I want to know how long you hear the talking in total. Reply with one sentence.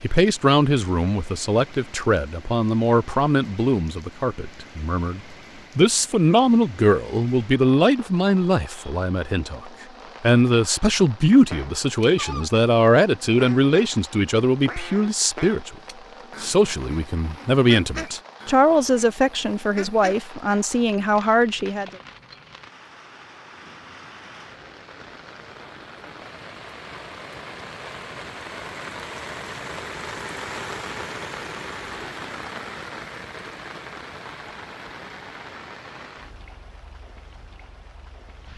You can hear the talking for 21 seconds altogether.